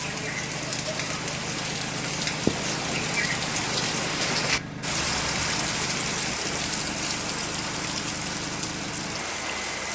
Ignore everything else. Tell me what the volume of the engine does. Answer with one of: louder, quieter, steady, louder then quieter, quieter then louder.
steady.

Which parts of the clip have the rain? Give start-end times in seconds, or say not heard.
0.0-9.9.